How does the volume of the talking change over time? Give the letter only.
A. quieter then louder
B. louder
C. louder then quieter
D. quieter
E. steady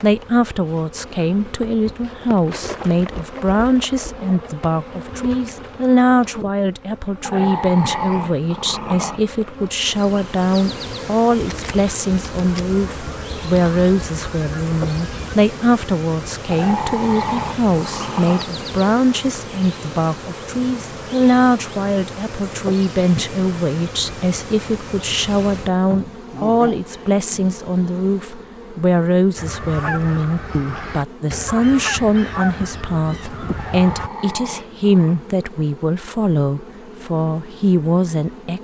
E.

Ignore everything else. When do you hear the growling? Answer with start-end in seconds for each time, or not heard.
7.2-9.2, 16.5-18.6, 33.5-35.2.